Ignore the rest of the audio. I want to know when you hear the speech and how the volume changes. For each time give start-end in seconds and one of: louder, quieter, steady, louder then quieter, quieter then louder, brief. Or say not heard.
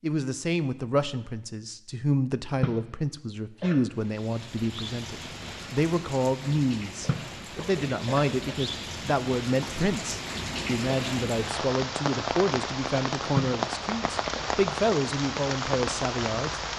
0.0-16.6 steady.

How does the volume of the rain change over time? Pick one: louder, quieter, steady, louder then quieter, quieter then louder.
louder.